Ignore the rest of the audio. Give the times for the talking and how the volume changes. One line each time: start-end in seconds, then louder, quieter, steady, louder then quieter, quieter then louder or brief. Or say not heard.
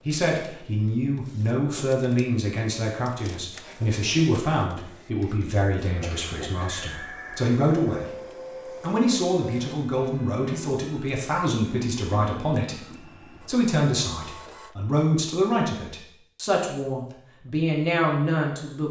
0.1-18.8 steady.